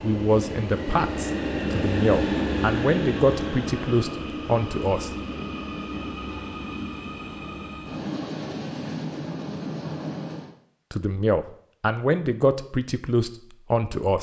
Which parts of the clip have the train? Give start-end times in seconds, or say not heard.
0.0-10.6.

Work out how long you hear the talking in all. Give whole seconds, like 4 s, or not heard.
8 s.